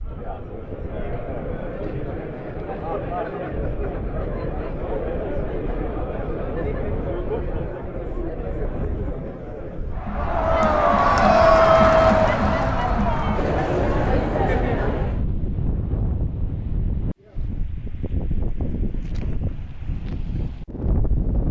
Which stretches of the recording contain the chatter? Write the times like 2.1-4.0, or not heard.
0.0-15.2.